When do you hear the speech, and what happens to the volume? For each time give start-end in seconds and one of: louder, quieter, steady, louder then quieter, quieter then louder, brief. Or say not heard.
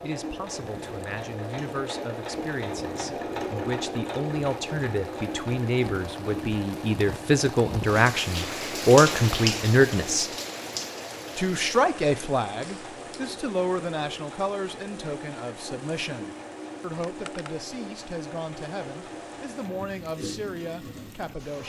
0.0-10.3 louder
11.3-21.6 quieter.